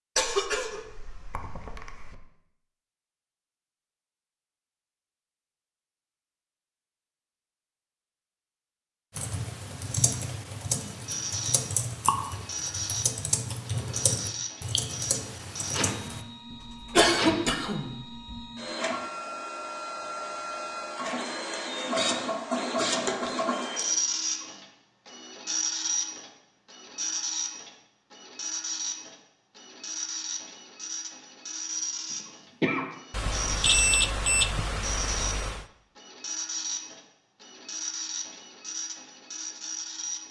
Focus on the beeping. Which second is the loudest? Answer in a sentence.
The volume of the beeping peaks at 34 seconds.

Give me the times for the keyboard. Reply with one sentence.
You can hear the keyboard from 9.1 to 16.2 s.